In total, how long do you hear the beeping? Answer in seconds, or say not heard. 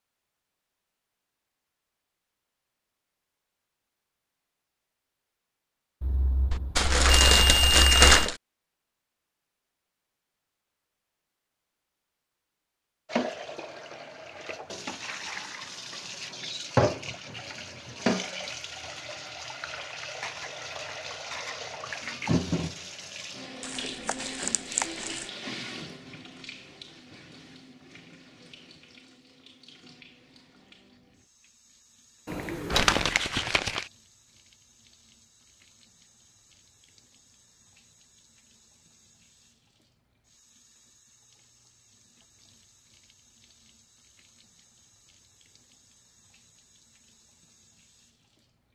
3 s.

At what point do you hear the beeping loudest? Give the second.
8 s.